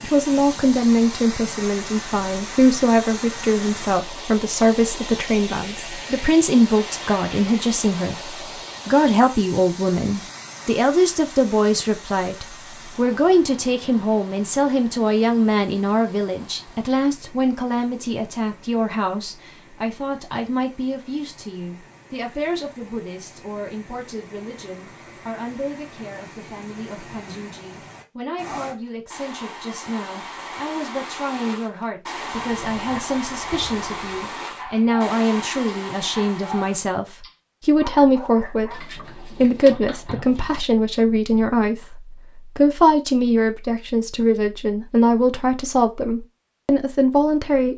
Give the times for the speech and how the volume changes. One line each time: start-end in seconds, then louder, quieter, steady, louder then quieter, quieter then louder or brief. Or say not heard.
0.0-47.7 quieter then louder.